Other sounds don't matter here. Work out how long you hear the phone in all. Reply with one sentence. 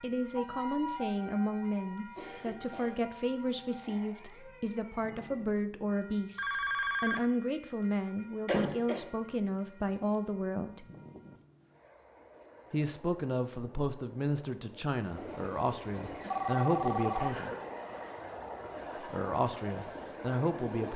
The phone can be heard for 2 seconds in total.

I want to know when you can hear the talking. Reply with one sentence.
You can hear the talking from 0.0 to 10.8 s, from 12.7 to 17.5 s and from 19.0 to 20.9 s.